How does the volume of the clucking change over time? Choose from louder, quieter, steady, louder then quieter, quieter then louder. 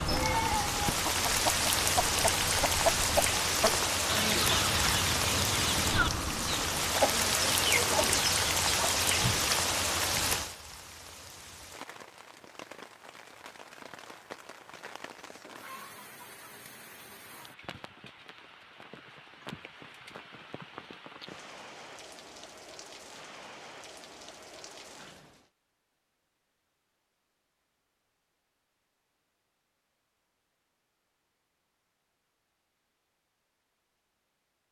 steady.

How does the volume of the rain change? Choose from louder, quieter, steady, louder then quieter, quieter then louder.
quieter.